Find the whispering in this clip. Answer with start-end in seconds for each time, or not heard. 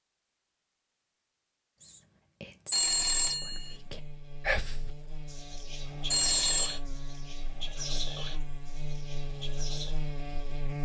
1.8-9.9.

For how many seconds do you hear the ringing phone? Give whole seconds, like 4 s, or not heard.
2 s.